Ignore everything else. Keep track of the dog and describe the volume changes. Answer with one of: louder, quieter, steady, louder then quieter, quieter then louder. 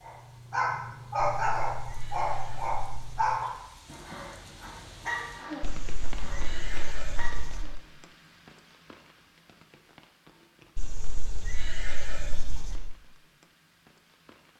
quieter.